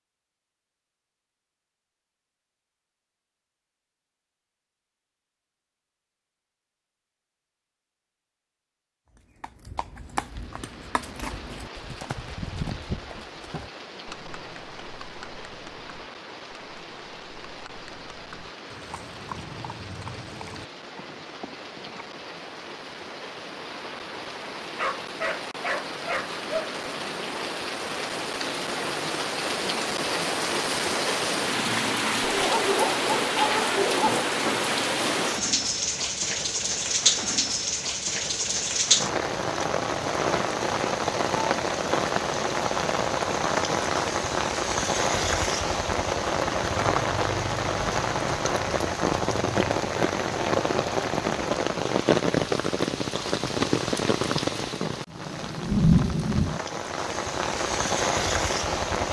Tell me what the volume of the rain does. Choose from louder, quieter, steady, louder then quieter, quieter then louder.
louder.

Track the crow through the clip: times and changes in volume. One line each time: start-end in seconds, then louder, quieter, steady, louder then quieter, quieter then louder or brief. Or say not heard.
not heard.